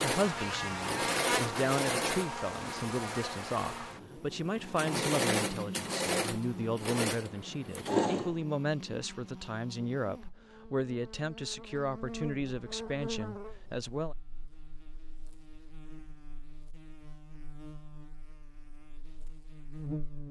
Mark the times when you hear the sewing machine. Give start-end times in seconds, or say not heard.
0.0-8.3.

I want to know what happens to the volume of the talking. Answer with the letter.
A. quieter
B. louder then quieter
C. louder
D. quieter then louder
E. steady
E.